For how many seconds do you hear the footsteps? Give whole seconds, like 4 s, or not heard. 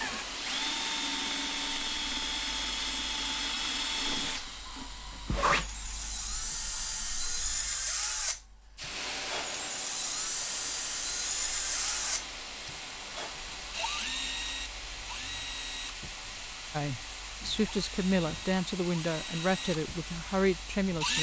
not heard.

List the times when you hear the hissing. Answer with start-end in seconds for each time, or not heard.
0.0-21.1.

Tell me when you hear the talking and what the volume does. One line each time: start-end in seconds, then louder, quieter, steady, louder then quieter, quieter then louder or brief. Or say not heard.
16.7-21.1 steady.